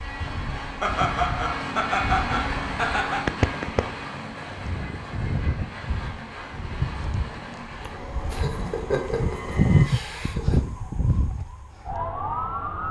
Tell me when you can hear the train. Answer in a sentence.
You can hear the train from 0.0 to 9.9 s.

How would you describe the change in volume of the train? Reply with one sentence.
The volume of the train goes down.